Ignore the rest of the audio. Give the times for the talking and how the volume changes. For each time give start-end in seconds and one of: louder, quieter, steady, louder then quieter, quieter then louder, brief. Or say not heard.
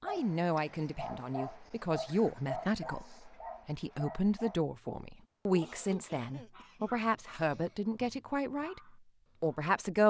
0.0-8.8 steady
9.4-10.0 brief.